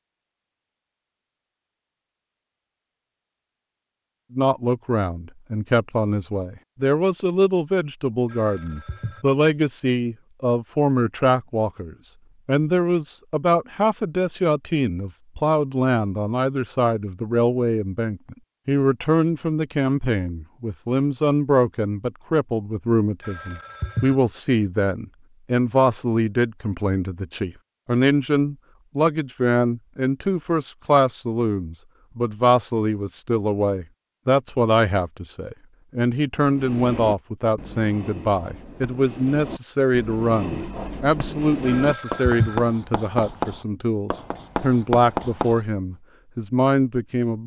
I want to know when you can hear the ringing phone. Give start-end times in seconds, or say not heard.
8.2-9.2, 23.2-24.1, 41.6-42.6.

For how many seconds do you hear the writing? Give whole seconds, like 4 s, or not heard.
9 s.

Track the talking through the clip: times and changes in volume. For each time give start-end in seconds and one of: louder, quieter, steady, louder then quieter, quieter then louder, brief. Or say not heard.
4.3-47.4 steady.